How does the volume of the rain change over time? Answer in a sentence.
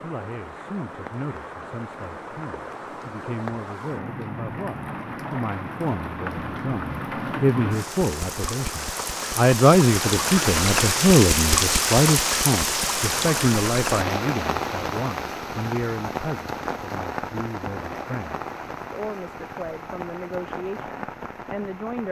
The loudness of the rain goes up, then down.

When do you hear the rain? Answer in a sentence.
You can hear the rain from 0.0 to 22.0 s.